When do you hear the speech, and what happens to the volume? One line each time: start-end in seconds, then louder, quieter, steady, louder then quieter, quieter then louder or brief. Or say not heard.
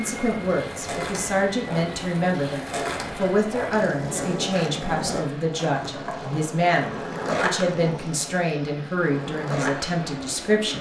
0.0-10.7 steady.